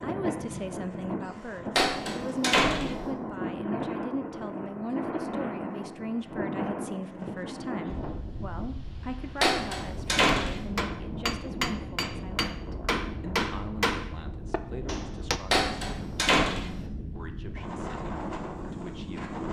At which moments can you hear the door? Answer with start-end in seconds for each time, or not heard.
1.8-3.0, 9.4-10.7, 15.5-16.8.